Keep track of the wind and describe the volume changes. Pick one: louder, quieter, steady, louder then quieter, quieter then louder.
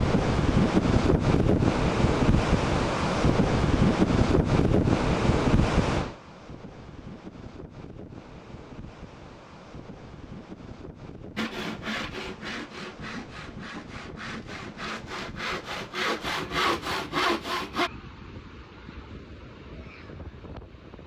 quieter.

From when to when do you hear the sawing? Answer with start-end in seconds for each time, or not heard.
11.3-17.9.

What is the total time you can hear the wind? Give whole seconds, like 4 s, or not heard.
21 s.